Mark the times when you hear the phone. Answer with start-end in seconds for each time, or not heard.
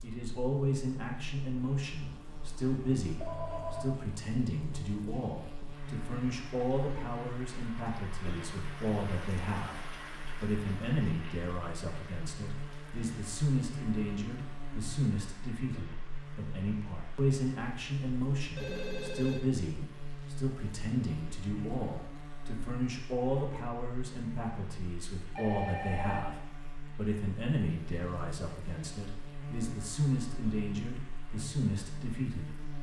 3.1-4.0, 18.6-19.6, 25.4-26.2.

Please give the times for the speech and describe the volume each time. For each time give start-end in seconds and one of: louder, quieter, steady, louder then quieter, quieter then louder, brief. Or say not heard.
0.0-32.7 steady.